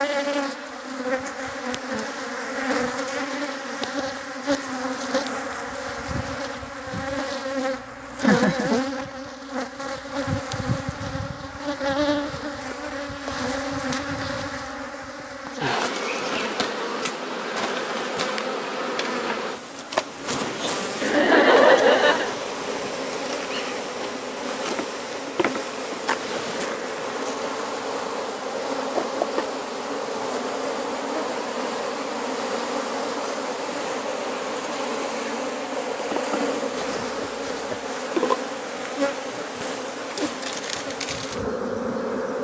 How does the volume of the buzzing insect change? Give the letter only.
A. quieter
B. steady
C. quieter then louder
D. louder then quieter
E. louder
B.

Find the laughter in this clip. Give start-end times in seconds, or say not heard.
8.2-8.7, 21.0-22.4, 37.0-37.8.